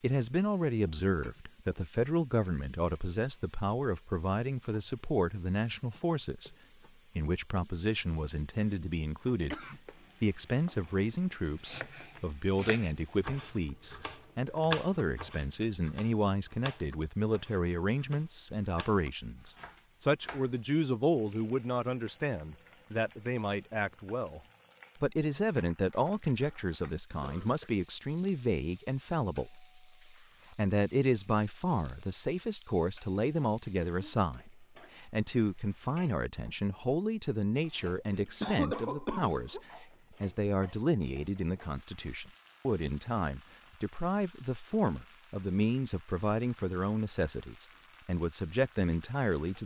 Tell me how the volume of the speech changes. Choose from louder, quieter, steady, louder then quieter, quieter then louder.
steady.